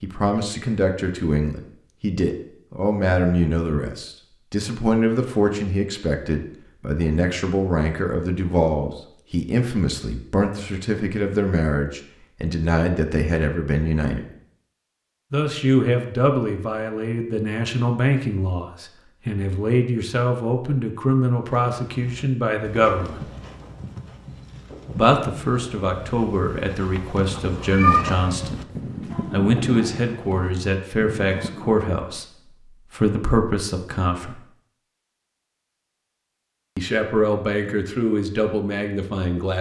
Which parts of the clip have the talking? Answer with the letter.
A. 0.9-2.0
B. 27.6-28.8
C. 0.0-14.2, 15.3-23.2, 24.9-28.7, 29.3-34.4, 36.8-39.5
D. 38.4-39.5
C.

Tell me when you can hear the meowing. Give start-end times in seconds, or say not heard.
27.6-28.8.